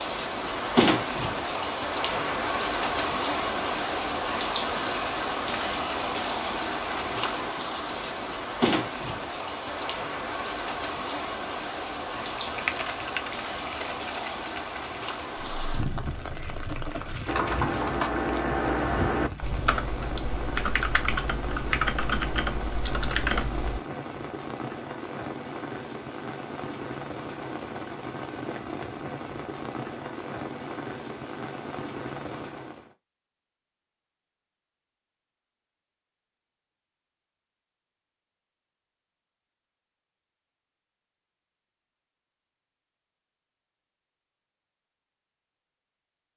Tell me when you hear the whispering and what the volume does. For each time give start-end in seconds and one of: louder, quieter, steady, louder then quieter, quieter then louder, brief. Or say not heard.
not heard.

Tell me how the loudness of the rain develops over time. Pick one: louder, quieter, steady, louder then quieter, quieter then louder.
quieter.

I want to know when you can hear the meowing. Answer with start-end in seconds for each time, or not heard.
not heard.